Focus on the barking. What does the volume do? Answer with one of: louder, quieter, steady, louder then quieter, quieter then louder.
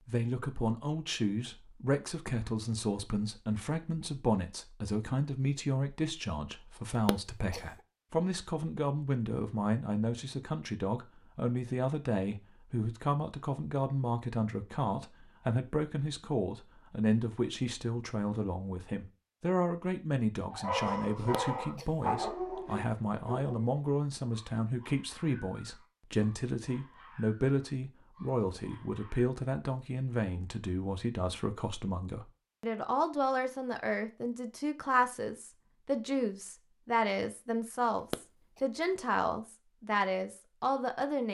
quieter.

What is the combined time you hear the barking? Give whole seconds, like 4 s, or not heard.
9 s.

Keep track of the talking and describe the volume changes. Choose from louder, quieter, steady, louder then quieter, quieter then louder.
steady.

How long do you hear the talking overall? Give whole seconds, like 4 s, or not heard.
41 s.